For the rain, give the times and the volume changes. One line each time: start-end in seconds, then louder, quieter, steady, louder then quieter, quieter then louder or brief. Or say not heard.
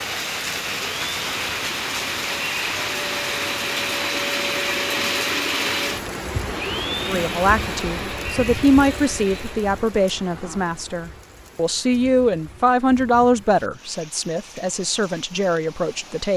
0.0-16.3 quieter.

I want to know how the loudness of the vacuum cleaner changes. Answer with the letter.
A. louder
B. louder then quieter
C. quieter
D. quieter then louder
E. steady
B.